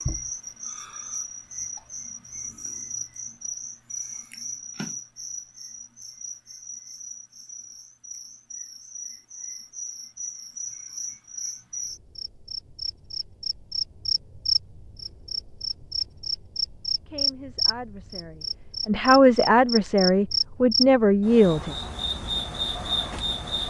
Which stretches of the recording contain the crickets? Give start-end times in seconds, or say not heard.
0.0-23.6.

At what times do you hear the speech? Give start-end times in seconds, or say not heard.
17.1-21.8.